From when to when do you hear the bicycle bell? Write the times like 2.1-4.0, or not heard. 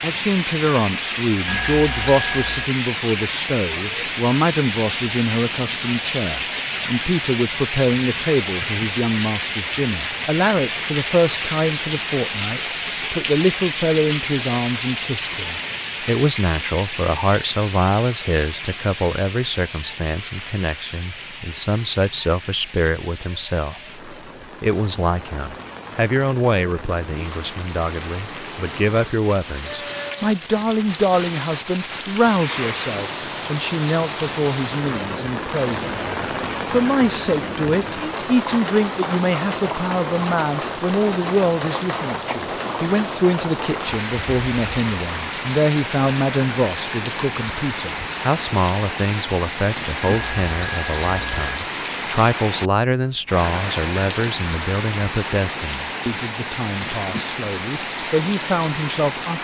1.4-2.7, 50.0-51.6.